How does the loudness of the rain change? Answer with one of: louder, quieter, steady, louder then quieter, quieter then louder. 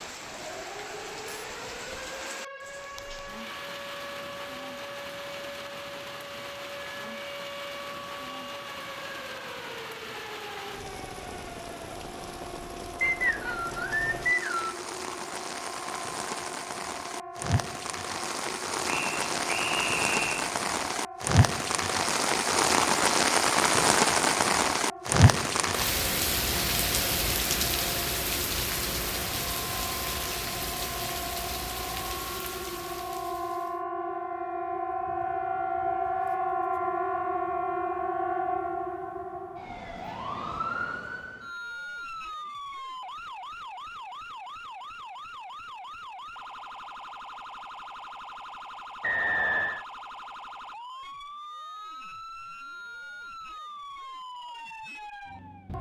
louder then quieter.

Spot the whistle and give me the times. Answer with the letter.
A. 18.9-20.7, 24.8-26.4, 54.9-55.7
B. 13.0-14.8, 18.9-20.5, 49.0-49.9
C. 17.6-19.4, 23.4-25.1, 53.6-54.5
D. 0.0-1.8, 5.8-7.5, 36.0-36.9
B.